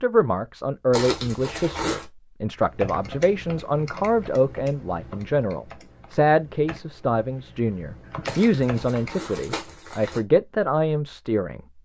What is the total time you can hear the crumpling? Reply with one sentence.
You can hear the crumpling for 3 seconds altogether.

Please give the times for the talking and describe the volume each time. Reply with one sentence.
The talking can be heard from 0.0 to 11.6 s, at a steady volume.